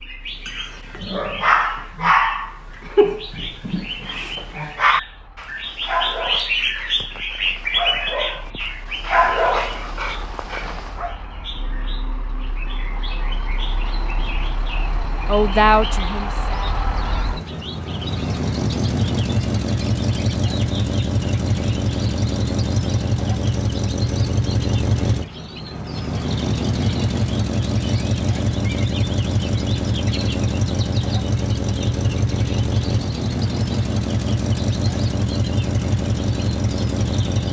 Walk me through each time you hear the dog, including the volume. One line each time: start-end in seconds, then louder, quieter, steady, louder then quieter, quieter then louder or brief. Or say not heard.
0.5-11.2 quieter then louder.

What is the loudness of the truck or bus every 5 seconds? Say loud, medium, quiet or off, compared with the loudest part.
quiet, quiet, quiet, loud, loud, loud, loud, loud.